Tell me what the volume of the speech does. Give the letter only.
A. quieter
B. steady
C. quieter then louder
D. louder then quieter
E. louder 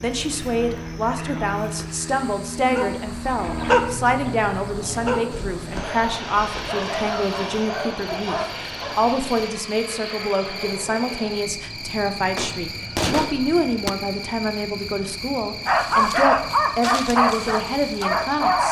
B.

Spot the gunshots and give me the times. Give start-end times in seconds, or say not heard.
12.3-13.9.